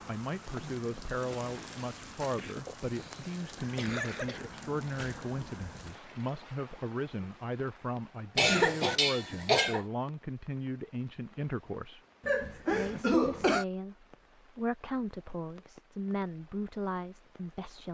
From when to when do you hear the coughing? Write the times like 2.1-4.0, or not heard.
2.4-4.5, 8.3-9.8, 12.2-13.7.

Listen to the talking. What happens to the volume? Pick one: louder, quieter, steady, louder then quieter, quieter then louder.
steady.